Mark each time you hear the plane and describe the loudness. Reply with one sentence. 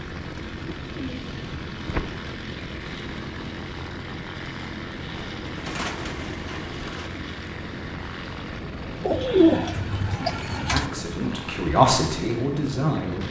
The plane can be heard from 0.0 to 13.2 s, at a steady volume.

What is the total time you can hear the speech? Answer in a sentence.
The speech can be heard for 3 seconds in total.